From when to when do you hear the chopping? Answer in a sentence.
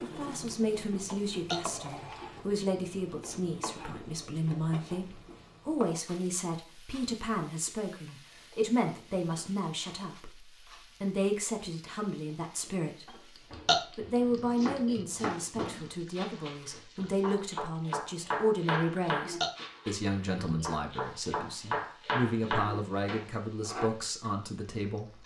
You can hear the chopping from 14.2 to 23.9 s.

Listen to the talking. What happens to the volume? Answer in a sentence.
The volume of the talking stays about the same.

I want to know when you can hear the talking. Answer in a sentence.
You can hear the talking from 0.0 to 13.2 s and from 13.9 to 25.2 s.